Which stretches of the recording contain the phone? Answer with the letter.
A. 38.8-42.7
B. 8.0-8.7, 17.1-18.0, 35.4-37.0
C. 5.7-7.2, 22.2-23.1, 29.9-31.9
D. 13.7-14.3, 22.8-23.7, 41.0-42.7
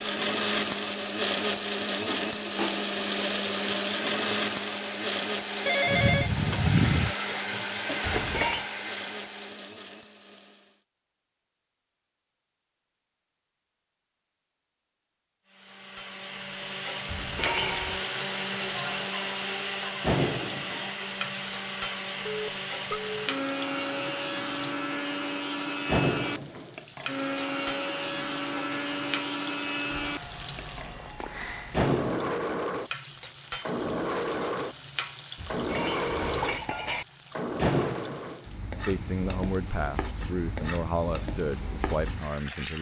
C.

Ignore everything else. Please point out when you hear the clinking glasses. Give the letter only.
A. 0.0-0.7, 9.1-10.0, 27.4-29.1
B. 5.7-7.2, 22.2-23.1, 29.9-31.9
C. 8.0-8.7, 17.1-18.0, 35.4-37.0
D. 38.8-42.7
C.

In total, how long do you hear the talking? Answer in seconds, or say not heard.
4 s.